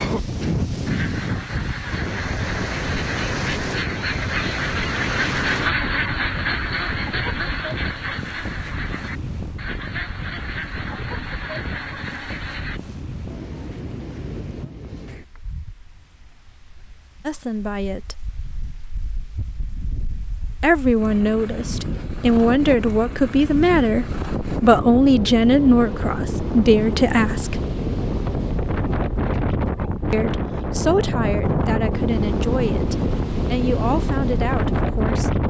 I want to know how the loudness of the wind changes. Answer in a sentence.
The loudness of the wind goes down, then up.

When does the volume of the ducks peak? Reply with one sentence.
The loudest moment of the ducks is at 6 seconds.